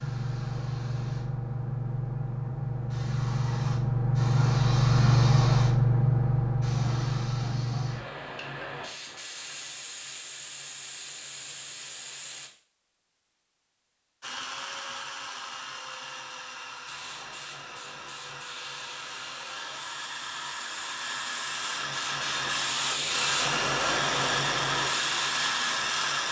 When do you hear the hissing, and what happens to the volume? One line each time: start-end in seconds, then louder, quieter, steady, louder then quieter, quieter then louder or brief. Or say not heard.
0.0-12.5 louder then quieter
16.9-26.2 louder.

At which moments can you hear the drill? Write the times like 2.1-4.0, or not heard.
14.2-26.2.